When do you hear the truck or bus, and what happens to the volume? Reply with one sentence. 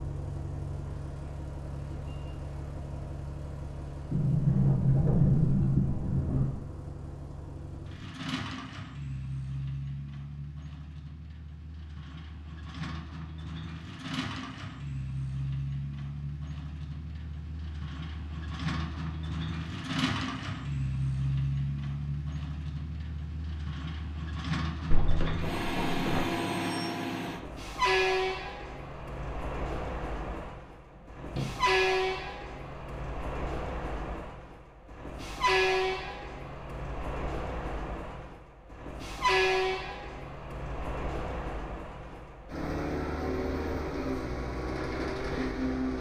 The truck or bus can be heard from 0.0 to 45.9 s, getting louder.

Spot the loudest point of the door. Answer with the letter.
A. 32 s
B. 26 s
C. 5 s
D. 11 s
C.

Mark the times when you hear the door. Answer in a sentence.
You can hear the door from 4.1 to 6.6 s, from 24.9 to 26.4 s and from 31.1 to 31.6 s.